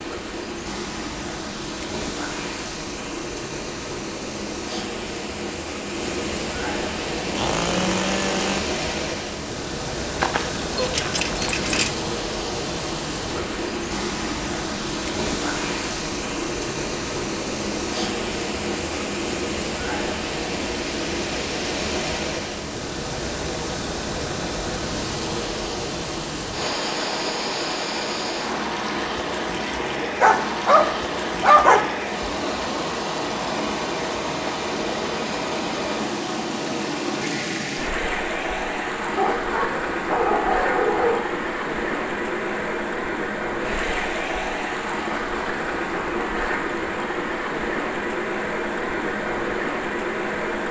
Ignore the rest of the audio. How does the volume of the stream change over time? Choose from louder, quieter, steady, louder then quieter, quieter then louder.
steady.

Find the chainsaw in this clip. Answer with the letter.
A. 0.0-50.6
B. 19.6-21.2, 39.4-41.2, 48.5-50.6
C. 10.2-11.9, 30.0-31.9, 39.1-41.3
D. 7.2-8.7
D.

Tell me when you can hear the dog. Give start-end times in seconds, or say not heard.
10.2-11.9, 30.0-31.9, 39.1-41.3.